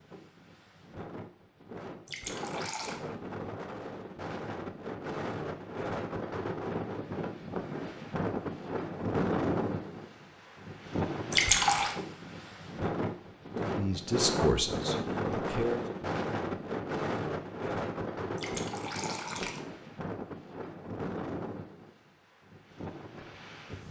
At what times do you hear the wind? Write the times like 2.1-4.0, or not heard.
0.0-23.8.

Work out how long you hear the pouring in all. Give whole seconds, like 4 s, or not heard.
3 s.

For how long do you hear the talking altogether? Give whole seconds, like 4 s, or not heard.
2 s.